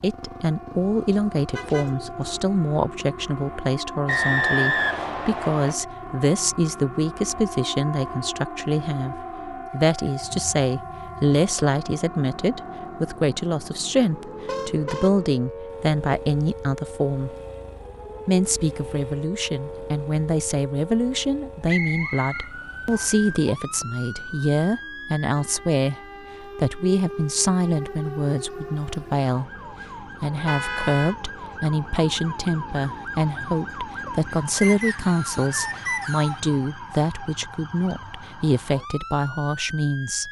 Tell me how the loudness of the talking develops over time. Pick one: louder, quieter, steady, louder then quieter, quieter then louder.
steady.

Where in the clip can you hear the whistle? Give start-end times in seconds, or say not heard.
4.0-5.8, 21.6-23.2, 34.6-36.4.